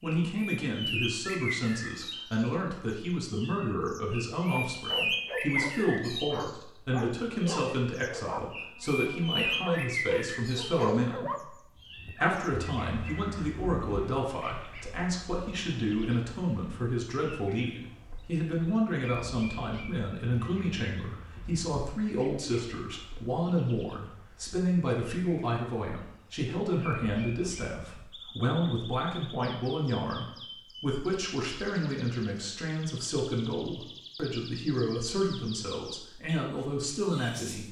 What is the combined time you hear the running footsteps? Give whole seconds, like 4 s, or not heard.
not heard.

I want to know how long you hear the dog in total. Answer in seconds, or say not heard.
8 s.